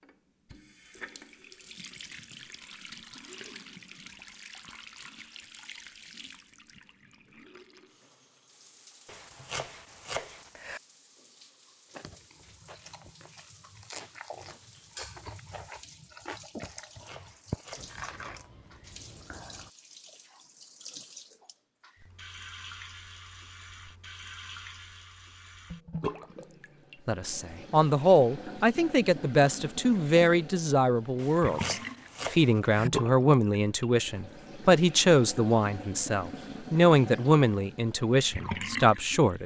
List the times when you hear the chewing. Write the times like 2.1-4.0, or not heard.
11.9-19.7.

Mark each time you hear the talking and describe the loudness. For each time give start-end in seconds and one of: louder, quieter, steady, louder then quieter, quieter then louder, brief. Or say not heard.
27.1-39.4 steady.